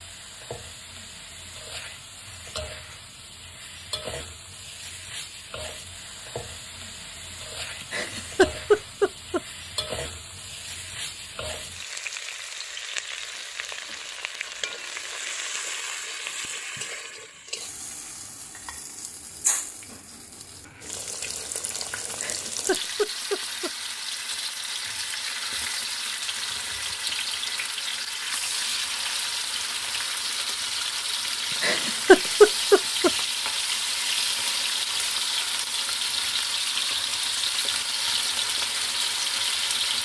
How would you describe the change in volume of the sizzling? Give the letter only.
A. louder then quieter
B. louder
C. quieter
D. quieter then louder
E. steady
B.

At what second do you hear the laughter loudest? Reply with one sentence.
The volume of the laughter peaks at 32 seconds.